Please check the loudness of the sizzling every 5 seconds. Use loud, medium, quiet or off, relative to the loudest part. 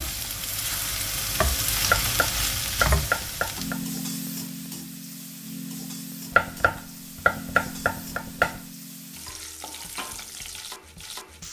loud, medium, medium.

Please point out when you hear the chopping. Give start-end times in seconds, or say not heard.
1.9-3.9, 6.3-8.6.